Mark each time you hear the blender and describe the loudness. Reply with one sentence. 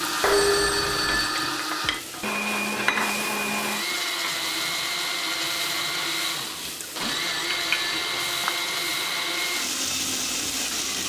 You can hear the blender from 0.0 to 11.0 s, at a steady volume.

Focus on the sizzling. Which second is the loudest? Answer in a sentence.
The volume of the sizzling peaks at 3 seconds.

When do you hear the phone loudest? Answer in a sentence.
The volume of the phone peaks at 1 second.